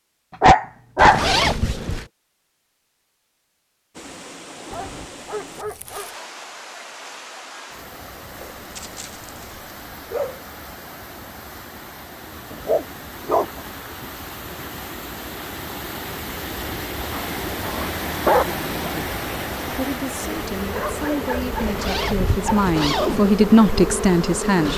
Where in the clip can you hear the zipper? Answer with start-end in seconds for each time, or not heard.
0.9-2.0, 21.6-23.3.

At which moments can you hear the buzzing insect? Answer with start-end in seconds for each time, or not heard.
20.1-24.7.